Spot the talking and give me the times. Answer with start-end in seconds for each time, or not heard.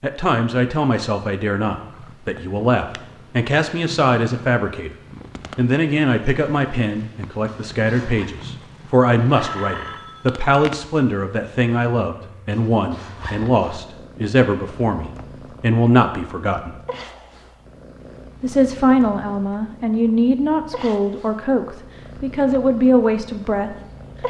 0.0-4.9, 5.5-16.8, 18.4-23.8.